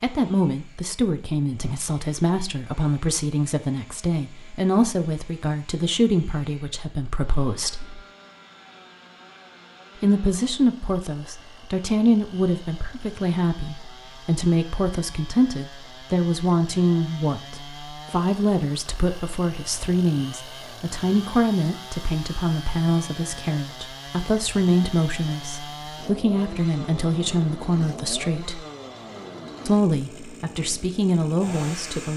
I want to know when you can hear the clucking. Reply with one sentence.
The clucking can't be heard in this clip.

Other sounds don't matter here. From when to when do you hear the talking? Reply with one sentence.
You can hear the talking from 0.0 to 8.0 s, from 10.0 to 28.6 s and from 29.6 to 32.1 s.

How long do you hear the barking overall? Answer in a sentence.
The barking can't be heard in this clip.